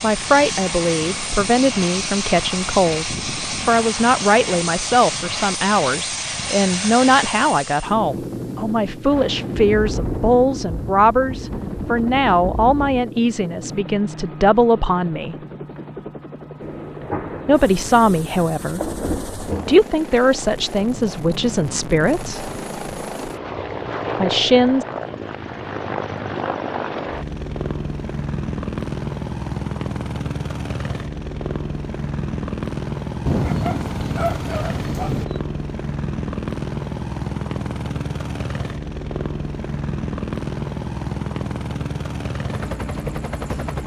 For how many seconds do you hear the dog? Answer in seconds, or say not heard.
2 s.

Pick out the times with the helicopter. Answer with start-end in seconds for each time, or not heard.
0.0-43.8.